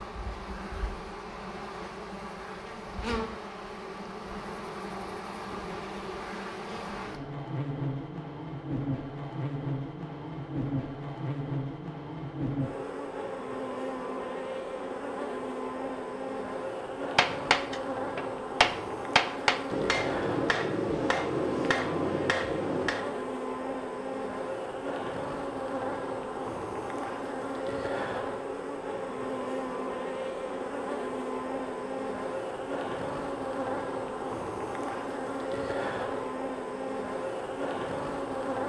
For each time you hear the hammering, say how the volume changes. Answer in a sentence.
You can hear the hammering from 17.1 to 23.2 s, getting louder then quieter.